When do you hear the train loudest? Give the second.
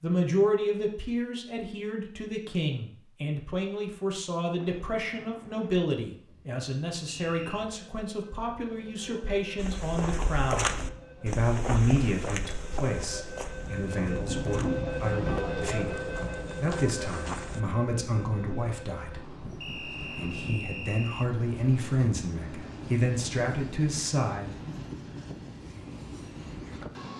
15 s.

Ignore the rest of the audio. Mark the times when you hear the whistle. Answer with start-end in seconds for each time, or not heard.
7.0-7.7, 19.6-21.3.